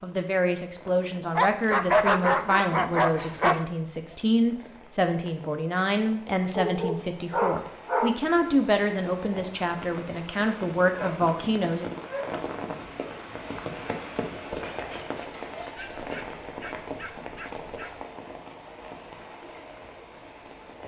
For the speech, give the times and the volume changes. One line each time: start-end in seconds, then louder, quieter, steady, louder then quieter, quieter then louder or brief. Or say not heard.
0.0-11.8 steady.